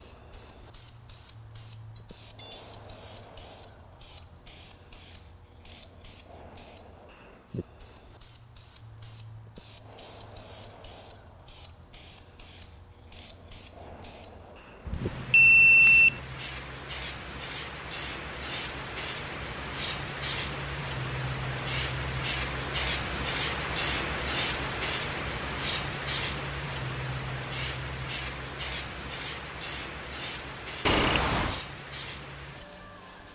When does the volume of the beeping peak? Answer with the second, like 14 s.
16 s.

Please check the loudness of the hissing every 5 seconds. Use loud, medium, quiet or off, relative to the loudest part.
quiet, quiet, quiet, medium, loud, loud, medium.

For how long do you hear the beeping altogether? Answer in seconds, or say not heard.
3 s.